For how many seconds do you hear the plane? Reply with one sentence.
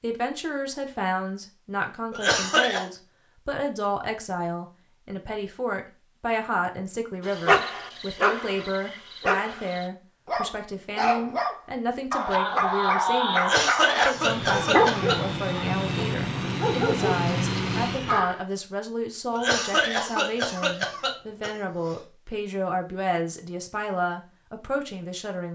The plane can be heard for 4 seconds in total.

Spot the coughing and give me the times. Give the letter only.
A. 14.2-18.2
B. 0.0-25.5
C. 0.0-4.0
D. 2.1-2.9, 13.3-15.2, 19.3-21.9
D.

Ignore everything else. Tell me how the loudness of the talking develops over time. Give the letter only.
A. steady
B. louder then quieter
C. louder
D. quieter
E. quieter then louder
A.